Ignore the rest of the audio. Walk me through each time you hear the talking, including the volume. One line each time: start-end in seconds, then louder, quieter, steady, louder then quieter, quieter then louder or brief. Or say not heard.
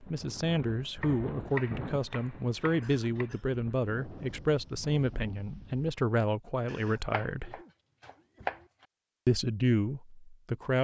0.0-7.6 steady
9.2-10.7 brief.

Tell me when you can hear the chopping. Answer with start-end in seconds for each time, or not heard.
1.0-3.3, 7.1-8.8.